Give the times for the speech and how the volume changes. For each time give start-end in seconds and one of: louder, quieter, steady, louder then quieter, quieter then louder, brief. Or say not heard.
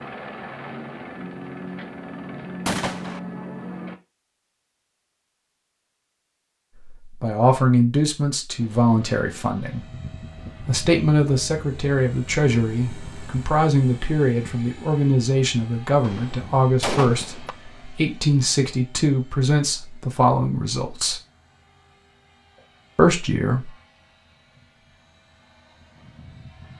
7.0-9.8 brief
10.7-21.2 steady
22.9-23.8 brief.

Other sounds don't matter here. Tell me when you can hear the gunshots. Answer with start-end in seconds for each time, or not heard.
2.6-3.2, 16.0-17.6.